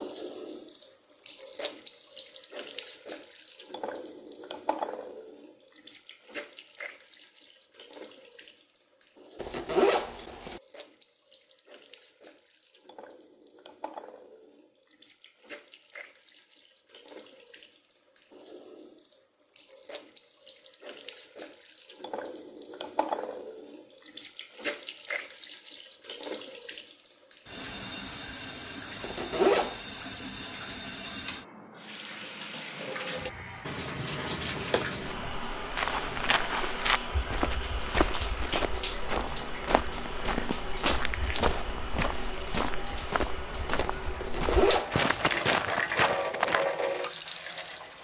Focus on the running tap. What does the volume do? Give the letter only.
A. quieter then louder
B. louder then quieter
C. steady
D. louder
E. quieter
A.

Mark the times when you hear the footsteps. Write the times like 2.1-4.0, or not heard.
35.7-46.9.